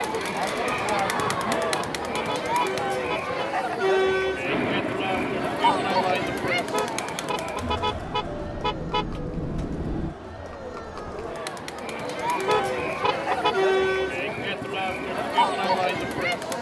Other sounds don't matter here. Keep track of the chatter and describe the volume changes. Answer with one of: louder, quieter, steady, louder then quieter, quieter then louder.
quieter then louder.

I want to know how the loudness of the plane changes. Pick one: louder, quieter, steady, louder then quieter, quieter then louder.
quieter then louder.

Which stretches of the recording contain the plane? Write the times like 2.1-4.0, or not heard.
4.4-10.2.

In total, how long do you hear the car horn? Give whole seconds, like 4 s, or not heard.
6 s.